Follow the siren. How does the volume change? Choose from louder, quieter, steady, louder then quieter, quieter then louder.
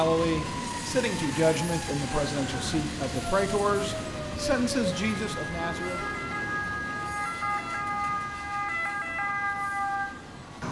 louder.